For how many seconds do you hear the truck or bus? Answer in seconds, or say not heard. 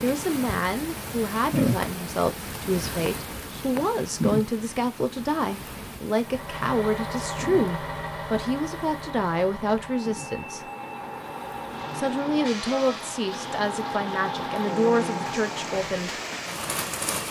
10 s.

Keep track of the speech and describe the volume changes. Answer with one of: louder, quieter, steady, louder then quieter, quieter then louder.
steady.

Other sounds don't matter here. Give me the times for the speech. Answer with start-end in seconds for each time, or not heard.
0.0-10.7, 11.9-16.1.